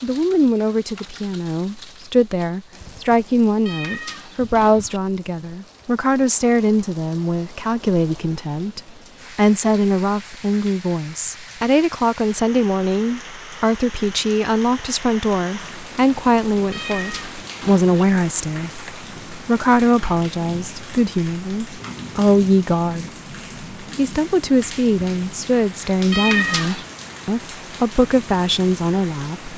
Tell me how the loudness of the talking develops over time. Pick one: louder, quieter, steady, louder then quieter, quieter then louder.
steady.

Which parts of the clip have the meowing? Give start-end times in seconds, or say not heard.
3.6-5.0, 16.7-17.9, 26.1-26.9.